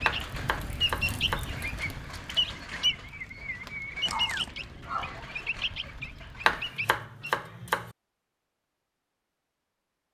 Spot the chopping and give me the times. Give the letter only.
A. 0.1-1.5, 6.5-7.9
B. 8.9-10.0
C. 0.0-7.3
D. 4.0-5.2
A.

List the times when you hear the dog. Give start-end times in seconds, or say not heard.
4.0-5.2.